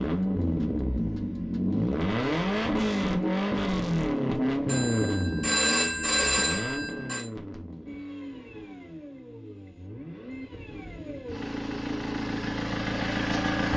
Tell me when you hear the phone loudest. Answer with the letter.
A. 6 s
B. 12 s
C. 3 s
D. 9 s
A.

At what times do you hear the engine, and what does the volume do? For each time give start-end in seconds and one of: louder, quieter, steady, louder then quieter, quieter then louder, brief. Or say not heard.
0.0-13.7 quieter then louder.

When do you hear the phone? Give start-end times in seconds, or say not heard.
4.7-7.2.